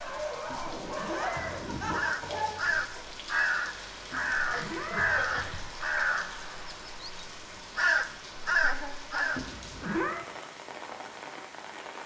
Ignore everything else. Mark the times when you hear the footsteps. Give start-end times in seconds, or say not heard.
not heard.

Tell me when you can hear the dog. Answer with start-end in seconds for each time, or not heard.
0.0-3.0.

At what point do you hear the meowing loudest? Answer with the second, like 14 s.
10 s.